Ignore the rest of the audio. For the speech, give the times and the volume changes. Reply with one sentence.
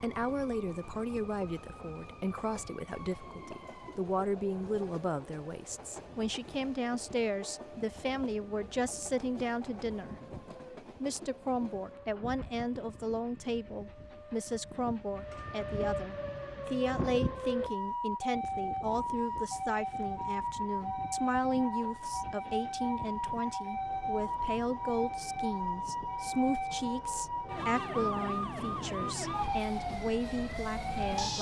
You can hear the speech from 0.0 to 10.2 s, at a steady volume; and from 11.0 to 31.3 s, at a steady volume.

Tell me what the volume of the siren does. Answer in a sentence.
The loudness of the siren goes up.